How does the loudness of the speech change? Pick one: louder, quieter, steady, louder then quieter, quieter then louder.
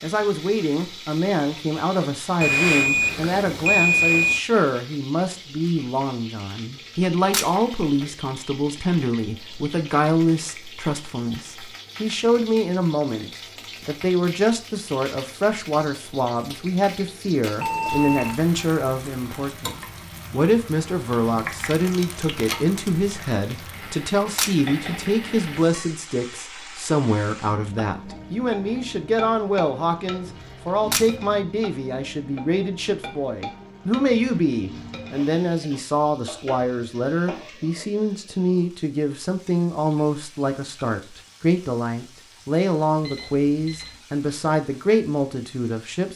steady.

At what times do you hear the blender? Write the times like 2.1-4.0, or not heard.
not heard.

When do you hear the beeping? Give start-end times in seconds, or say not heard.
2.4-4.4, 17.6-18.4, 43.0-44.0.